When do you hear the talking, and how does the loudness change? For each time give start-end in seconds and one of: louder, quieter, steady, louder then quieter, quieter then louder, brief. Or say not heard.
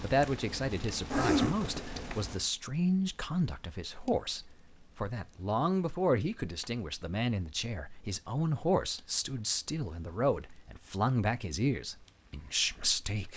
0.0-13.3 steady.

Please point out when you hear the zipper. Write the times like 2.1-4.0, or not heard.
1.1-2.2.